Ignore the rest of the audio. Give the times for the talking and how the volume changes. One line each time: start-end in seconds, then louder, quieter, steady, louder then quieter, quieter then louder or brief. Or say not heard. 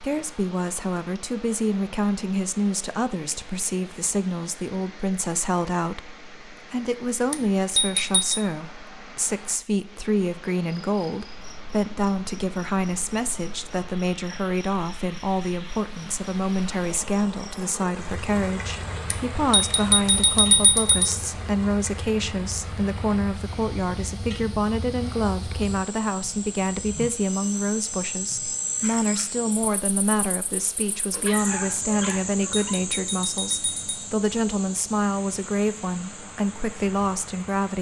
0.0-37.7 steady.